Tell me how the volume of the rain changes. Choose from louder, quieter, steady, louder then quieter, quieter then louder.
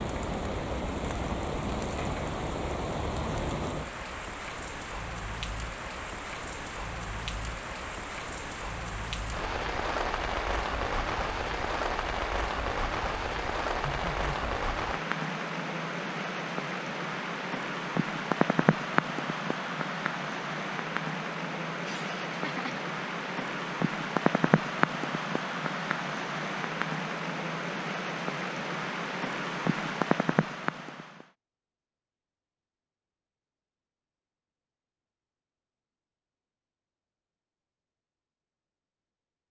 steady.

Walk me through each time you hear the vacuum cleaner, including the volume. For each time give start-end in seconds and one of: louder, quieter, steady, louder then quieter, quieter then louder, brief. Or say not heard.
not heard.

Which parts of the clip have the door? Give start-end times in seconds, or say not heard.
not heard.